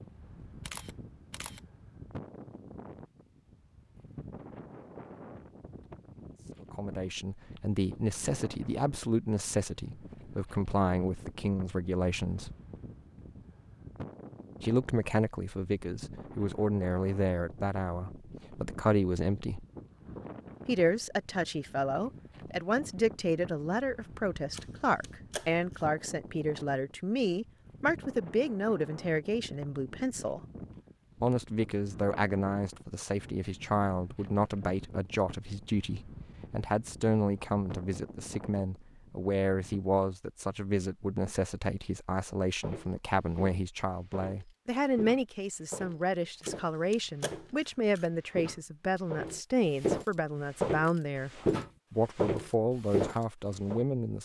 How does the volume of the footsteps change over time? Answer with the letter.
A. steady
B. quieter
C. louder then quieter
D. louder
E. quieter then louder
D.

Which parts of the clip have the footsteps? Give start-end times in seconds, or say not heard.
42.6-47.6, 48.2-53.9.